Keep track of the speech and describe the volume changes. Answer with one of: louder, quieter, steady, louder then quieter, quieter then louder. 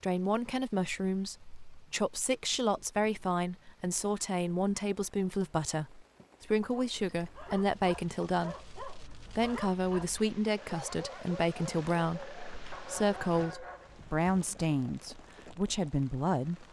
steady.